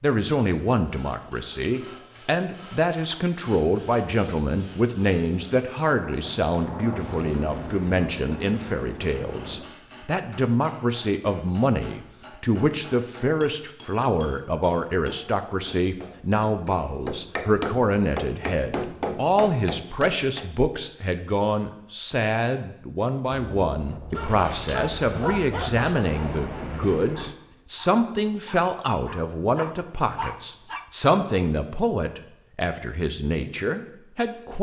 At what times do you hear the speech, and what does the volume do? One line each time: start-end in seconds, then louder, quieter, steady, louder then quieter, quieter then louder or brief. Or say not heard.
0.0-34.5 steady.